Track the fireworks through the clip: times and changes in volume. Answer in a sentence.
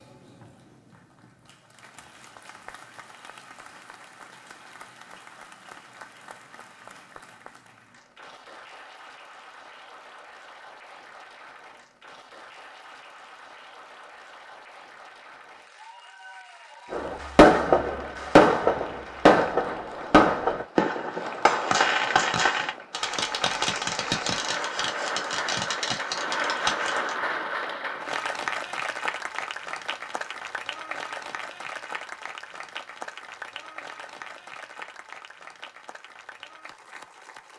You can hear the fireworks from 16.9 to 27.1 s, getting quieter.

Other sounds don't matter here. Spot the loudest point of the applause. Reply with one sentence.
The volume of the applause peaks at 27 seconds.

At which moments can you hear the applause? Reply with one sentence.
You can hear the applause from 0.0 to 37.5 s.